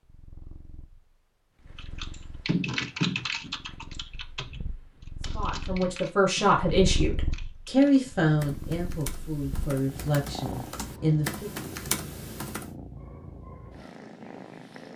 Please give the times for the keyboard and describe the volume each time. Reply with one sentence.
You can hear the keyboard from 1.8 to 12.7 s, getting quieter then louder.